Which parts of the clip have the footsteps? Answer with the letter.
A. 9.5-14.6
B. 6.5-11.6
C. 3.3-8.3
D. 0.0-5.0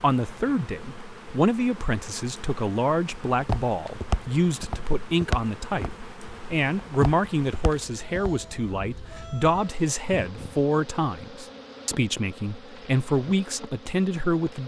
C.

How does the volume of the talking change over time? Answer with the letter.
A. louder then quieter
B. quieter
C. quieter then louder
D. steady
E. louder
D.